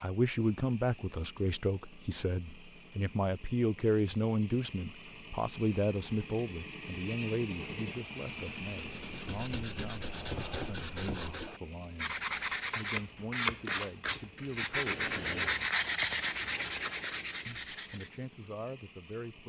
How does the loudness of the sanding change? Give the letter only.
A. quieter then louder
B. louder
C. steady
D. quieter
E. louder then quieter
B.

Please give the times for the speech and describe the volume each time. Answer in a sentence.
The speech can be heard from 0.0 to 15.7 s, getting quieter; and briefly from 17.4 to 19.4 s.